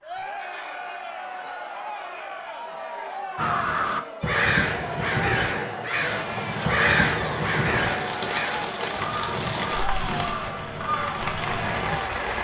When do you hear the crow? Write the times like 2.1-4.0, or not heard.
3.4-12.0.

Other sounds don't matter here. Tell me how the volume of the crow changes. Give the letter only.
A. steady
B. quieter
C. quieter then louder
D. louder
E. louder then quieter
B.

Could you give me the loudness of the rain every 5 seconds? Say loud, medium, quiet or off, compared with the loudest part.
off, loud, loud.